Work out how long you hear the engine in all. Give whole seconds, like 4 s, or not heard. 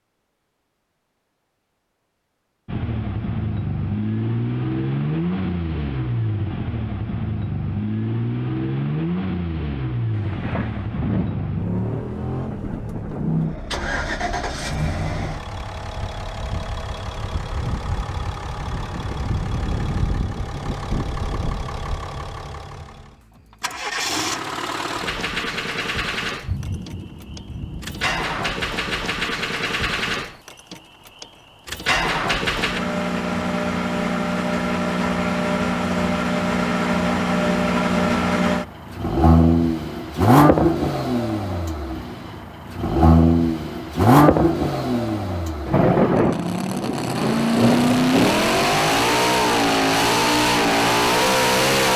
49 s.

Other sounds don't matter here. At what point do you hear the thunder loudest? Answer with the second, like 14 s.
46 s.